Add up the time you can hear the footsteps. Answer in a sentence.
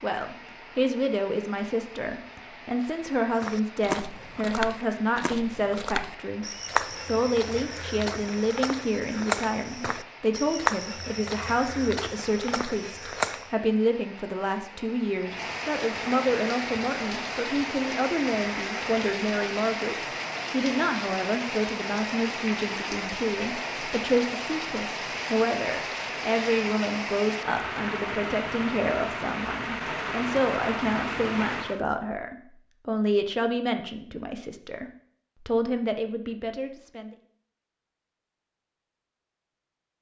You can hear the footsteps for 10 seconds altogether.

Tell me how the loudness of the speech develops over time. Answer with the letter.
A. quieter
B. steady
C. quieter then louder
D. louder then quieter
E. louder
B.